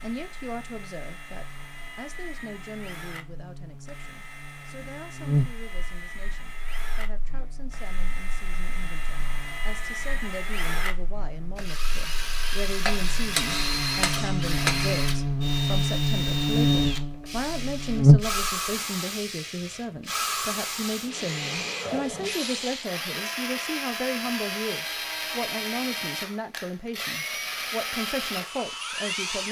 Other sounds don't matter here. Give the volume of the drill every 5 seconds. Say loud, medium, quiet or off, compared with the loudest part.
quiet, medium, loud, loud, loud, loud.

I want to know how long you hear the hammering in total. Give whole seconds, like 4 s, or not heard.
2 s.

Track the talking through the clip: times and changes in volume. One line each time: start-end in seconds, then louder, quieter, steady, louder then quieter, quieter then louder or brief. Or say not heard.
0.0-29.4 louder.